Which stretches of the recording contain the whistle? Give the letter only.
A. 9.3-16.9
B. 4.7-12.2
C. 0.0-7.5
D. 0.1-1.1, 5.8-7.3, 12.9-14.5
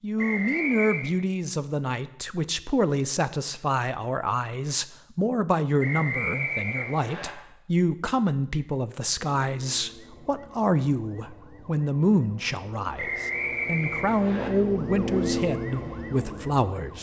D.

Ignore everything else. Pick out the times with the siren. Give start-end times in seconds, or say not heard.
9.3-16.9.